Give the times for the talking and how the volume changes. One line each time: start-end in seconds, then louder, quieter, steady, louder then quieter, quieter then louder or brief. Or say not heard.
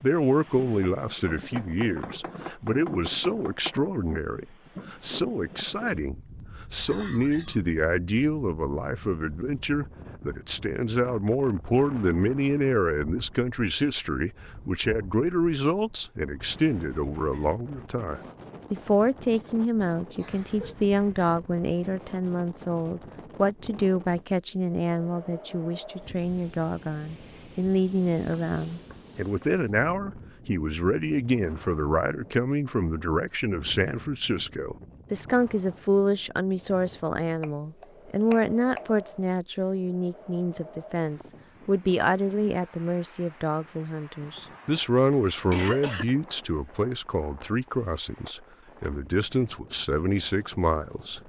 0.0-51.2 steady.